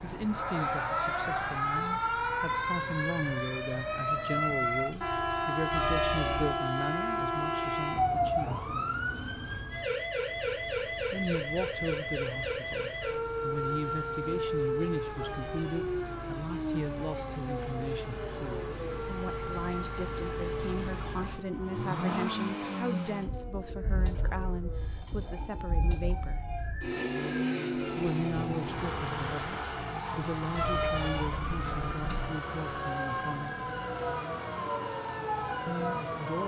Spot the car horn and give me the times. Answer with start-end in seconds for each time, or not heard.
5.7-6.6, 15.2-16.0, 30.6-32.4.